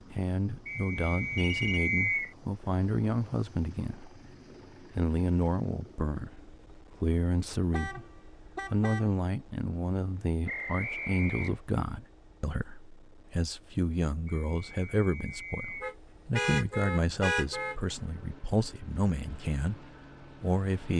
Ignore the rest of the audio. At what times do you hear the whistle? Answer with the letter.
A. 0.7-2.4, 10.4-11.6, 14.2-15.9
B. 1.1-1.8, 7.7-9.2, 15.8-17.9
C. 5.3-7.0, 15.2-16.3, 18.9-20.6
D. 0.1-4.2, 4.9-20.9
A.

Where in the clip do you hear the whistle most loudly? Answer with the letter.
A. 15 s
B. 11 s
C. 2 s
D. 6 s
C.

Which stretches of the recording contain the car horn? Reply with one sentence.
The car horn can be heard from 1.1 to 1.8 s, from 7.7 to 9.2 s and from 15.8 to 17.9 s.